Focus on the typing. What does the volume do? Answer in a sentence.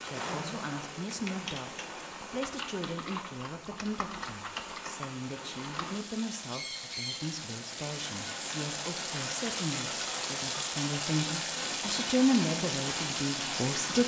The volume of the typing stays about the same.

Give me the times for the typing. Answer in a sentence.
You can hear the typing from 1.1 to 5.9 s.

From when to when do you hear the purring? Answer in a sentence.
The purring can't be heard in this clip.